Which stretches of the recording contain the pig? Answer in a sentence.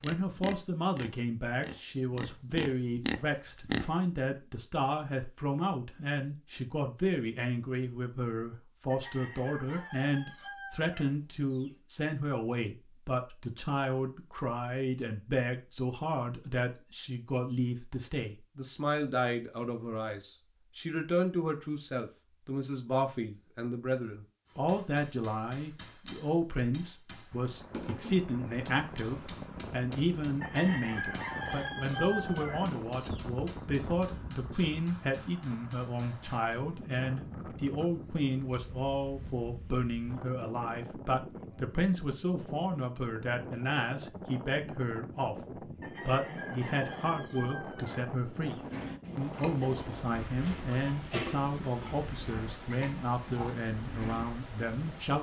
The pig can be heard from 0.0 to 3.9 s and from 48.4 to 55.0 s.